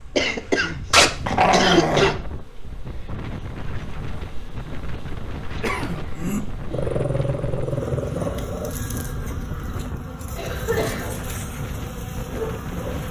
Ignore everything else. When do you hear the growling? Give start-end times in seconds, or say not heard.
0.9-2.1, 6.7-8.7.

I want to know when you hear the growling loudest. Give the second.
1 s.